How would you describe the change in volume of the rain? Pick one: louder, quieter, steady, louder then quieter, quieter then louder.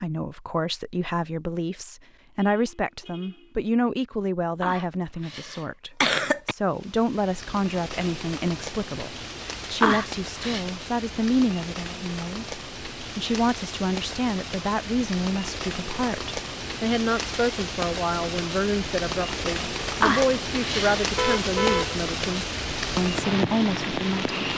louder.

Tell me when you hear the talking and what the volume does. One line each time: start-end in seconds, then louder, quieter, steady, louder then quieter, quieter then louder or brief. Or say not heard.
0.0-24.4 steady.